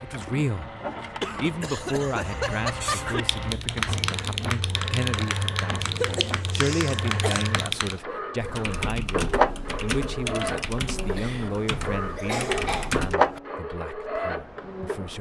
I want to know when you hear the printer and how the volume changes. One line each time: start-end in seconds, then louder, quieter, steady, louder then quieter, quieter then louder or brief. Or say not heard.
0.0-15.1 louder.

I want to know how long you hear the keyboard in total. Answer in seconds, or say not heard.
10 s.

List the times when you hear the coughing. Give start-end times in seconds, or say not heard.
1.2-3.2, 6.0-7.5, 11.7-13.4.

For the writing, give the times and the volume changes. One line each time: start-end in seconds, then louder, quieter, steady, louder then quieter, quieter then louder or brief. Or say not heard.
not heard.